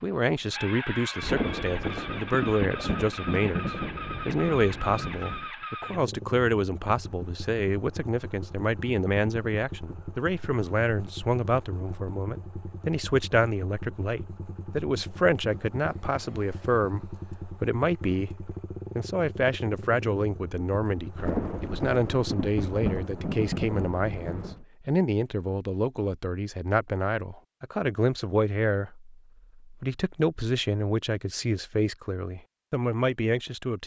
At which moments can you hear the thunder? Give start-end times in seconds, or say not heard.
1.2-5.5, 21.1-24.6.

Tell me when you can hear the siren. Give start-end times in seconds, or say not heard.
not heard.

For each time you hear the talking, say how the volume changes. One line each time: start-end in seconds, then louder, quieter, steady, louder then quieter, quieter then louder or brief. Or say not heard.
0.0-33.8 steady.